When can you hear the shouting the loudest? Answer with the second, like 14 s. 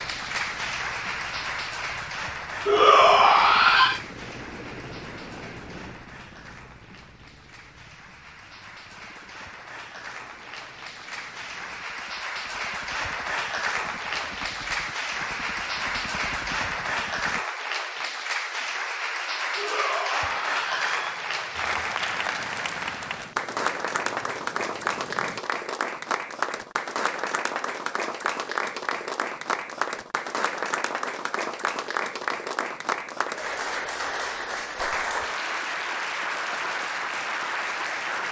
3 s.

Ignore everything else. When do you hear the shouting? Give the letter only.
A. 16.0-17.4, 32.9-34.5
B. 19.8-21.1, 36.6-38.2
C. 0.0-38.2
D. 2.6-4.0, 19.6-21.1
D.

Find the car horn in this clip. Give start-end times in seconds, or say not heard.
not heard.